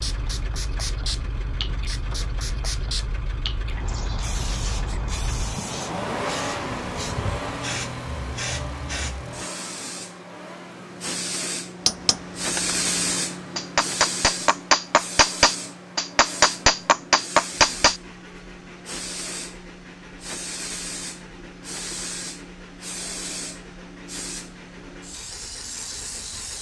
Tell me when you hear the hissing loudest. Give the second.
13 s.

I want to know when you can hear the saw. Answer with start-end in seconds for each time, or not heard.
not heard.